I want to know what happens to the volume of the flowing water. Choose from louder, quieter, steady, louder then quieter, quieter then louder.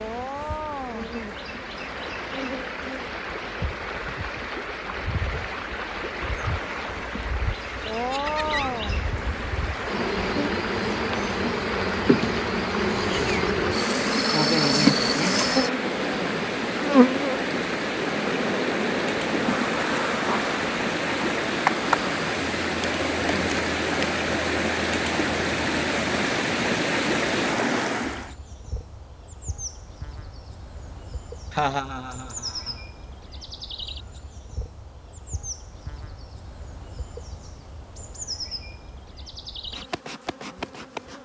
louder.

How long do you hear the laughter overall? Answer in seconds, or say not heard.
2 s.